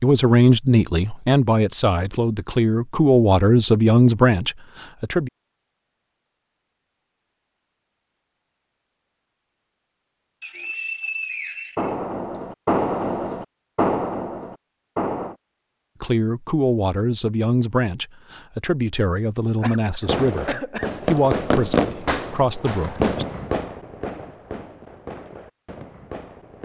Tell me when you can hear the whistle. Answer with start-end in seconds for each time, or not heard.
10.4-12.4.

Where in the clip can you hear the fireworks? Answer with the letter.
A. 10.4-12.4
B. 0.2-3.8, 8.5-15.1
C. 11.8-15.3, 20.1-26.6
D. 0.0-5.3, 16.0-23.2
C.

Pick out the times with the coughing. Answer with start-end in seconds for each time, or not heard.
19.6-20.9.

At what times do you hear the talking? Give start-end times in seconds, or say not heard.
0.0-5.3, 16.0-23.2.